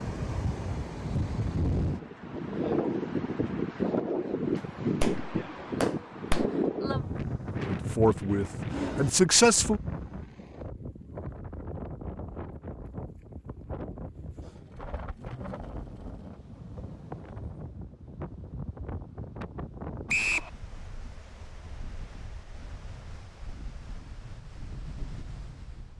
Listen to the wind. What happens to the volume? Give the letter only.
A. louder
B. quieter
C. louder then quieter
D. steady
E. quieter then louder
B.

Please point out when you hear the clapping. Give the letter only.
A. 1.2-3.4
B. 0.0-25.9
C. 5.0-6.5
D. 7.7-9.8
C.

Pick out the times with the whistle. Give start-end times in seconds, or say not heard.
20.1-20.5.